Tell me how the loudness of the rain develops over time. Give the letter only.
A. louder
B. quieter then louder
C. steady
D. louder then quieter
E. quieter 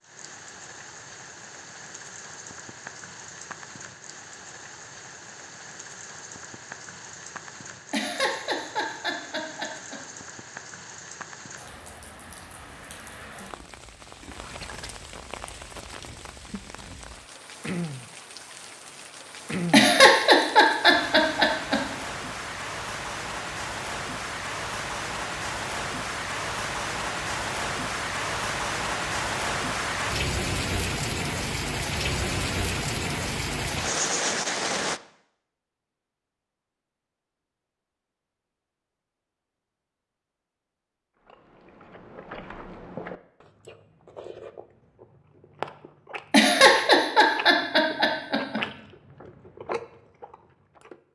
A.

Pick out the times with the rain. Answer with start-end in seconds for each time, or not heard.
0.0-35.0.